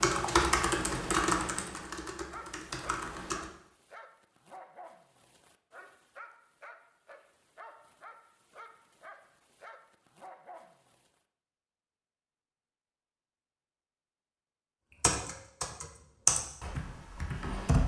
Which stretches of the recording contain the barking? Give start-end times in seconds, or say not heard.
2.3-11.2.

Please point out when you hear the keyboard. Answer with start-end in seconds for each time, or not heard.
0.0-3.5, 15.0-17.8.